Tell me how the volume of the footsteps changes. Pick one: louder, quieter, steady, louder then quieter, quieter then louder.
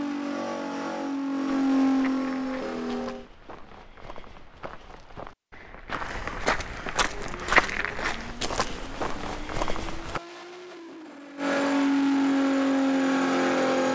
louder then quieter.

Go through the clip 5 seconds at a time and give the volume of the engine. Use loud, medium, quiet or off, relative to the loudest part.
loud, quiet, loud.